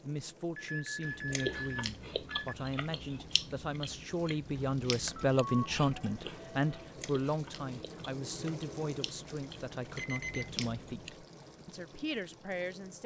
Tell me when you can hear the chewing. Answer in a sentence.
The chewing can be heard from 1.1 to 11.1 s.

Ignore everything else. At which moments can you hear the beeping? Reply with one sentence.
The beeping can be heard from 0.6 to 2.5 s, from 5.0 to 6.9 s and from 9.9 to 10.7 s.